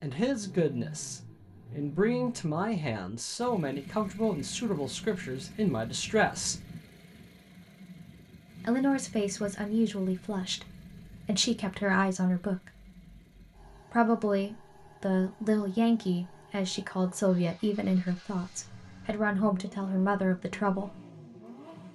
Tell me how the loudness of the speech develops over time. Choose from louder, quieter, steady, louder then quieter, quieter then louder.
steady.